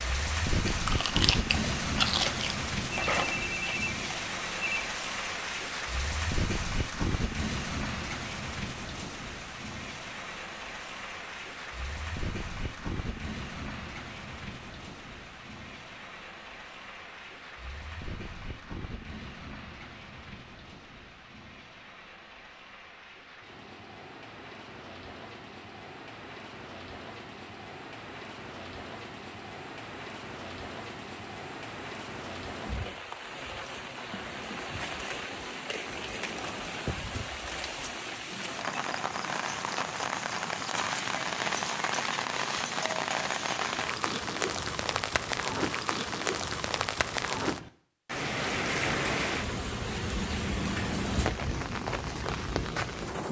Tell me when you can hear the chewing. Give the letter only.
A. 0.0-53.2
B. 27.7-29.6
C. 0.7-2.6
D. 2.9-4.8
C.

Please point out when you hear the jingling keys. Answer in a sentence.
The jingling keys can't be heard in this clip.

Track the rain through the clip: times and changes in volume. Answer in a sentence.
The rain can be heard from 0.0 to 53.2 s, getting quieter then louder.